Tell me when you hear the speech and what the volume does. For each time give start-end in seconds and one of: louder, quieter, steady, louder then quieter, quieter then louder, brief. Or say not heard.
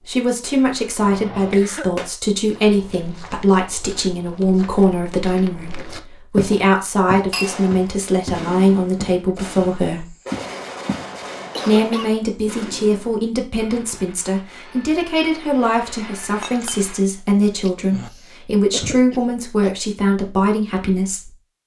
0.0-10.1 steady
11.7-21.3 steady.